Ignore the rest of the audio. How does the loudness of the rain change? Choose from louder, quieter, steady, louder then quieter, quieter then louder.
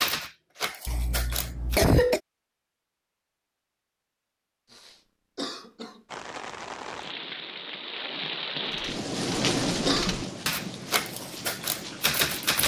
louder then quieter.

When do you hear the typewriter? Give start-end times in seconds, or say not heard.
0.0-1.8, 8.7-12.6.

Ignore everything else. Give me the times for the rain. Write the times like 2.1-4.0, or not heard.
6.0-12.6.